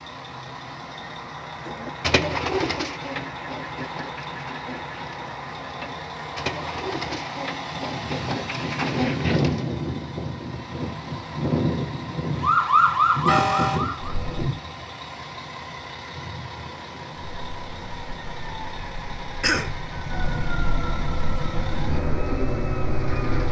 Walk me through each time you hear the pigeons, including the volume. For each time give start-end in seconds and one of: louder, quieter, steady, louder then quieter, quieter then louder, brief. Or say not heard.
1.6-9.6 quieter then louder.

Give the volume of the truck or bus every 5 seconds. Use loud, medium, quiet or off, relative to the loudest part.
medium, loud, loud, medium, loud.